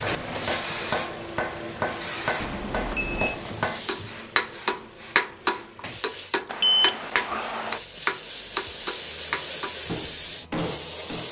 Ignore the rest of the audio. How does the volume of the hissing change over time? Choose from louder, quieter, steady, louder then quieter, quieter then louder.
quieter then louder.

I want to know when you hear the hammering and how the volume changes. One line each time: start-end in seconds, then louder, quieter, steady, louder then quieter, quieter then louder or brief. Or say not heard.
0.0-11.2 louder then quieter.